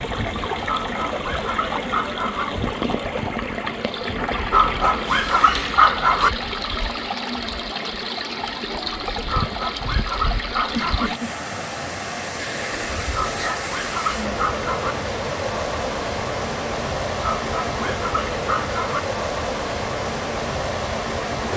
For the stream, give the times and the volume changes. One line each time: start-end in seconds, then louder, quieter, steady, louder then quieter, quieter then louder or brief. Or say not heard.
0.0-21.5 steady.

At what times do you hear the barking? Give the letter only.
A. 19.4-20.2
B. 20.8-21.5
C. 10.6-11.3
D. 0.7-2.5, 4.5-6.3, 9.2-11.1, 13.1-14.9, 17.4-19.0
D.